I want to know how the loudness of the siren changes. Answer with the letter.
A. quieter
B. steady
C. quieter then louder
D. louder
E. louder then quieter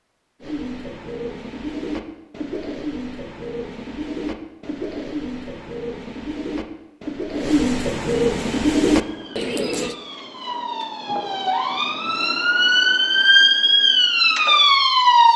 D.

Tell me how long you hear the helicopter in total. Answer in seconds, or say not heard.
not heard.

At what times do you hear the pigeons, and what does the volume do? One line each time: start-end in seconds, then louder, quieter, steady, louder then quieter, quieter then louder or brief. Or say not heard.
0.4-9.9 louder.